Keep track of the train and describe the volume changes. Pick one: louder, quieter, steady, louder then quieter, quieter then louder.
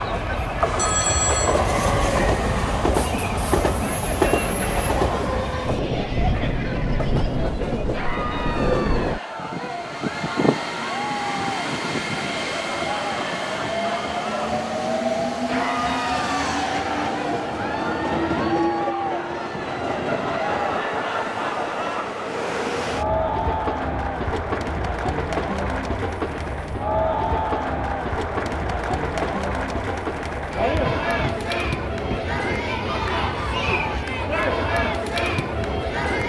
quieter.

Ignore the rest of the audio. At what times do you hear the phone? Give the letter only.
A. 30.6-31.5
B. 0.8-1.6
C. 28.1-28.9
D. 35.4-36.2
B.